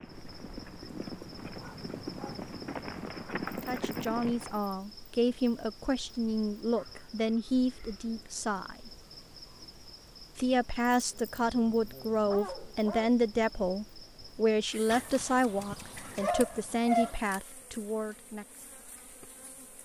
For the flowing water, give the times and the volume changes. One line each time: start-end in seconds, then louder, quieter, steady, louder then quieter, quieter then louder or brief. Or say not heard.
not heard.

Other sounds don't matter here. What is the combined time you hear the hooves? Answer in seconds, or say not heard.
5 s.